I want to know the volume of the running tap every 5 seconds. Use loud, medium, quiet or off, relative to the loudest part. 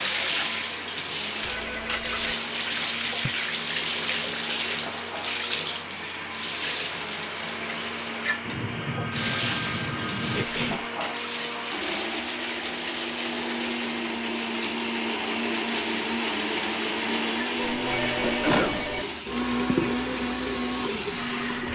loud, loud, medium, medium, medium.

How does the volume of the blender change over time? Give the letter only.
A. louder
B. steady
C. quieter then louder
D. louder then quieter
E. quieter
A.